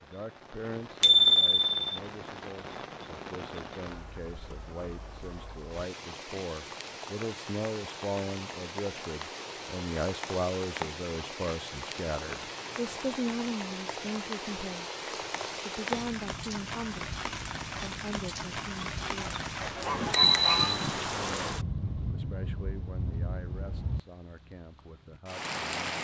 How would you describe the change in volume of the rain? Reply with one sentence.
The volume of the rain goes up.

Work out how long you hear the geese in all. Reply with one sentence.
The geese can be heard for 2 seconds in total.